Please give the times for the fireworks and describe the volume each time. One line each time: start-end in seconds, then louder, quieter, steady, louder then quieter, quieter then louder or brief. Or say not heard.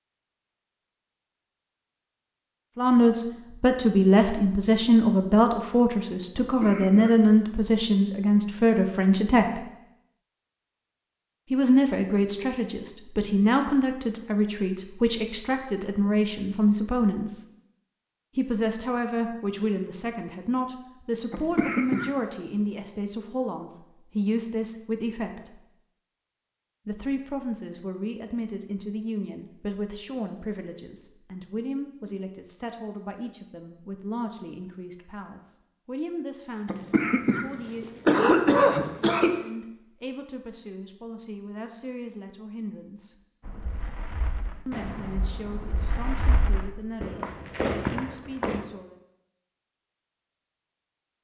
43.4-48.6 louder.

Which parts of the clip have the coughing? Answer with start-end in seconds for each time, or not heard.
6.3-7.4, 21.3-22.1, 36.6-39.3.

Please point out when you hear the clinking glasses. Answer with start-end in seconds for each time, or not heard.
not heard.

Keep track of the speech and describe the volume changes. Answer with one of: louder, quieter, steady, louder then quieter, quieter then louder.
quieter.